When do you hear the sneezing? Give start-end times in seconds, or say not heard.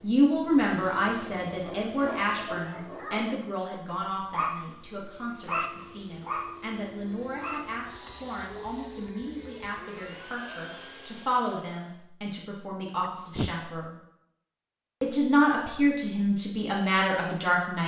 13.0-13.6.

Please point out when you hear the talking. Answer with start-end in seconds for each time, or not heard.
0.0-13.9, 15.0-17.8.